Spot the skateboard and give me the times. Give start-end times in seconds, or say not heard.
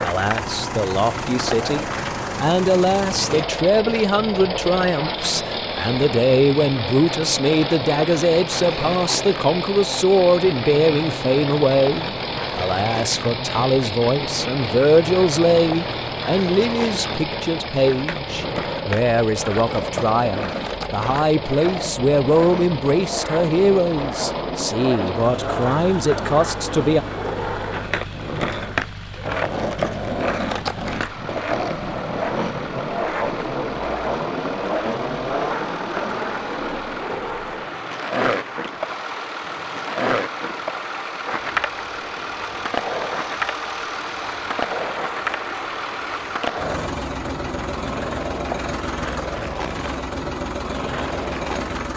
0.0-51.9.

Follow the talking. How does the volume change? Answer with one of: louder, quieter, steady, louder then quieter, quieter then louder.
steady.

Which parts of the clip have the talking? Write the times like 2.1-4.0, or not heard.
0.0-27.1.